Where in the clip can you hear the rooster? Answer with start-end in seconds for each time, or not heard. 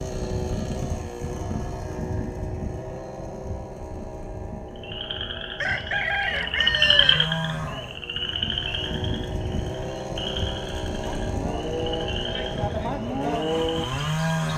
5.6-7.3.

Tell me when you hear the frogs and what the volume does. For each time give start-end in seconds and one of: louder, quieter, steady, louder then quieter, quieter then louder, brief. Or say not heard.
4.8-14.5 quieter.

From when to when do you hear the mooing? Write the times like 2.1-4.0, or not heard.
10.9-14.5.